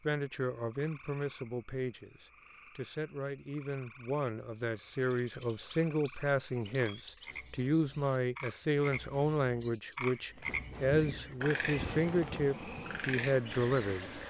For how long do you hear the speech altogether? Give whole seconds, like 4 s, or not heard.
14 s.